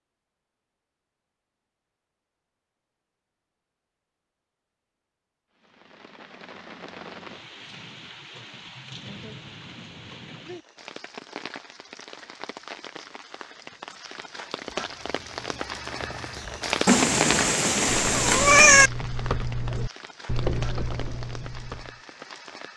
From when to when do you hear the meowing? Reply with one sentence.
You can hear the meowing from 16.9 to 18.9 s.